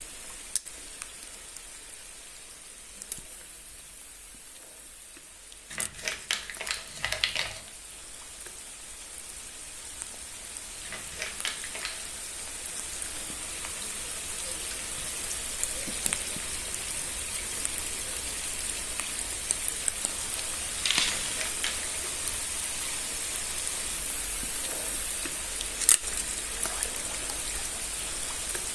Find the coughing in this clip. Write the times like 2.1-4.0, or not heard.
not heard.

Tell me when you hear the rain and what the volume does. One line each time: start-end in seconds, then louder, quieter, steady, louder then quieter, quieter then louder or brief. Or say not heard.
0.0-28.7 louder.